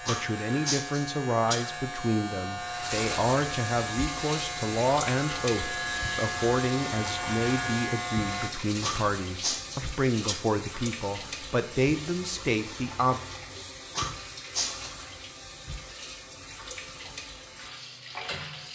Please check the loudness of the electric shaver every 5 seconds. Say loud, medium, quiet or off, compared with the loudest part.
loud, loud, off, off.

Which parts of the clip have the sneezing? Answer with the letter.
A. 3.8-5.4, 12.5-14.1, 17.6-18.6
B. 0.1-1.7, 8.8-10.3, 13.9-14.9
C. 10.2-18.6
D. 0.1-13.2
B.